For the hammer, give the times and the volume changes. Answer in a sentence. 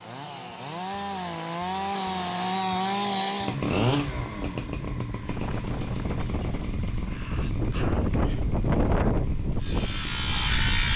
The hammer can't be heard in this clip.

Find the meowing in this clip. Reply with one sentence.
You can't hear the meowing here.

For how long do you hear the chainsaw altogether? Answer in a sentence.
You can hear the chainsaw for 11 seconds altogether.